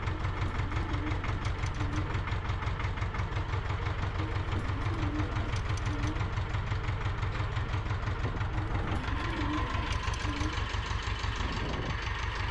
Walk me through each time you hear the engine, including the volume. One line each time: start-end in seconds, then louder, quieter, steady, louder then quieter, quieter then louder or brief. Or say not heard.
0.0-12.4 steady.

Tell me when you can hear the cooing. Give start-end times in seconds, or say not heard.
0.1-2.2, 4.2-6.3, 8.6-10.7.